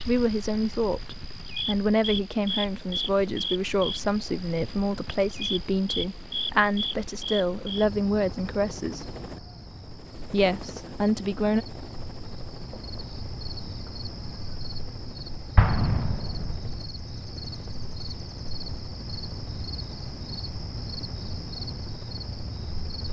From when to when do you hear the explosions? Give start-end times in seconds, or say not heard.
15.6-16.7.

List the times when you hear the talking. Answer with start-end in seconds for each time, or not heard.
0.1-9.2, 10.3-11.7.